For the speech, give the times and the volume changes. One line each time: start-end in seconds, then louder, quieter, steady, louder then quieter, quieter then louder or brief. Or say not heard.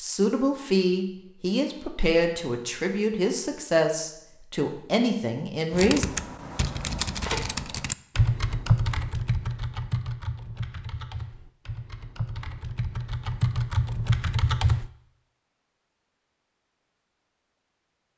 0.0-6.0 steady.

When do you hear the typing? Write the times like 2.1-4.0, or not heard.
5.7-14.9.